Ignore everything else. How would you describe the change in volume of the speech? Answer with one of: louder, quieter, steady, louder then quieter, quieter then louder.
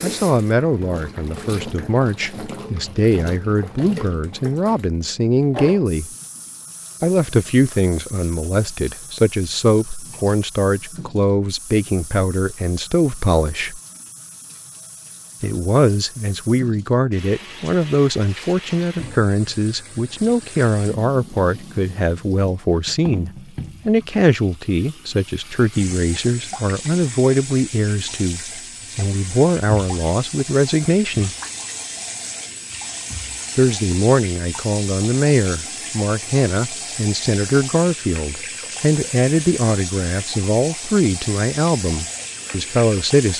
steady.